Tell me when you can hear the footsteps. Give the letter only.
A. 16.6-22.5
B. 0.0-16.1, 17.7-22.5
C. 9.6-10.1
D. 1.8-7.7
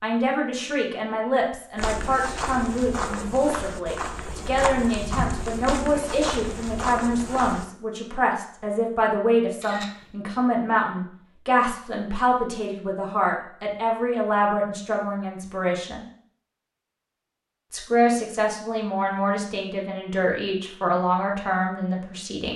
D.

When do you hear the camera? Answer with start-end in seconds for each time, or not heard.
9.6-10.1.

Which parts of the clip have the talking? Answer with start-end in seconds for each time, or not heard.
0.0-16.1, 17.7-22.5.